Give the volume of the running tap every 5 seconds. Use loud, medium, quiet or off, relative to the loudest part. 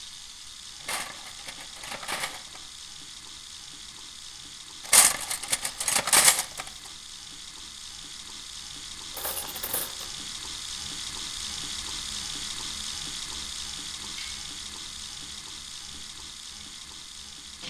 medium, medium, loud, medium.